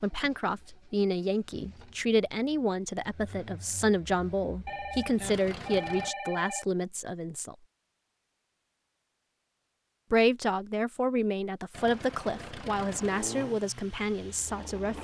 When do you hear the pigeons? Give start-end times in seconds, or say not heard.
not heard.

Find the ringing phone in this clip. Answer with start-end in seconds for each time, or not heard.
4.7-6.7.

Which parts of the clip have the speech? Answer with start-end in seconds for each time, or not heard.
0.0-7.5, 10.1-14.9.